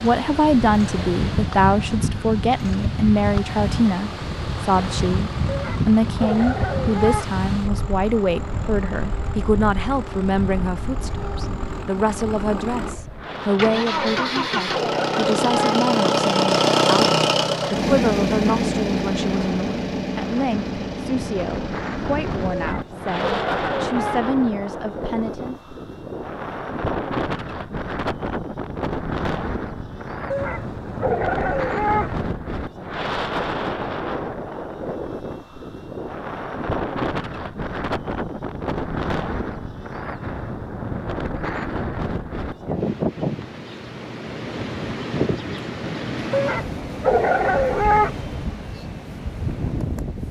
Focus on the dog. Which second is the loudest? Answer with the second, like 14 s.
48 s.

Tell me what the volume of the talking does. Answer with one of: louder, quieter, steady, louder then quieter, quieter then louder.
quieter.